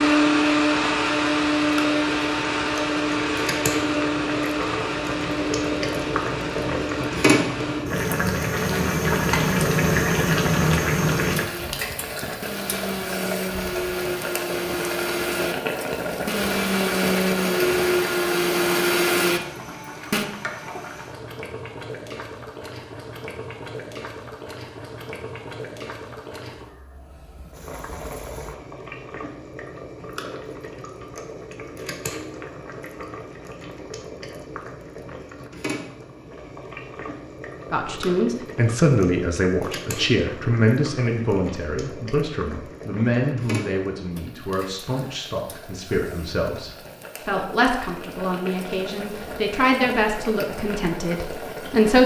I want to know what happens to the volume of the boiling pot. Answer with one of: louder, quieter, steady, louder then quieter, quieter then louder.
quieter.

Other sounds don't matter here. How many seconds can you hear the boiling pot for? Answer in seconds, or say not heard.
52 s.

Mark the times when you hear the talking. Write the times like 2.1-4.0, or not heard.
37.7-52.0.